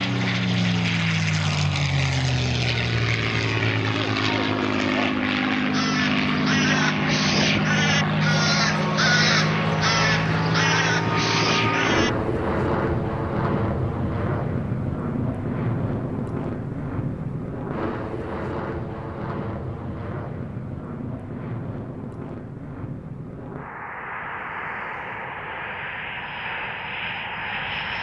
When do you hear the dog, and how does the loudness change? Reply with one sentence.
The dog can't be heard in this clip.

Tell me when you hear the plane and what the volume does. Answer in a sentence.
You can hear the plane from 0.0 to 27.9 s, getting quieter.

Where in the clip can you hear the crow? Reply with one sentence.
The crow can be heard from 5.7 to 12.1 s.